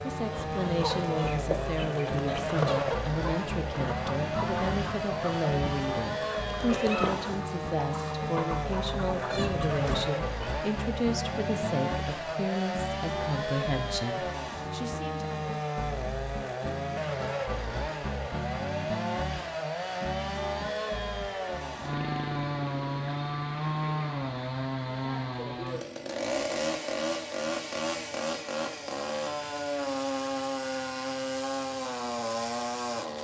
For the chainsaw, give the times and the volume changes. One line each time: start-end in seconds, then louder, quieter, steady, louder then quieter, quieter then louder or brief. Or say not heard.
0.0-33.2 steady.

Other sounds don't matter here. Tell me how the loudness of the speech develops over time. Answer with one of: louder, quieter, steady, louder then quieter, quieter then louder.
steady.